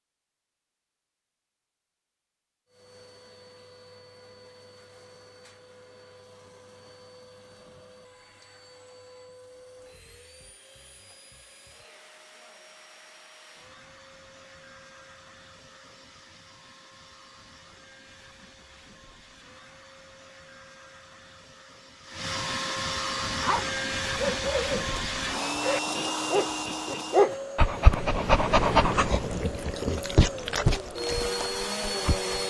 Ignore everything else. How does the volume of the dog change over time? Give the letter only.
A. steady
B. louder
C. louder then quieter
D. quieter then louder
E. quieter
C.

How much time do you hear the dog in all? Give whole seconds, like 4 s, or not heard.
9 s.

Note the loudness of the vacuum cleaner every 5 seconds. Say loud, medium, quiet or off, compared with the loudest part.
quiet, quiet, quiet, quiet, loud, loud, loud.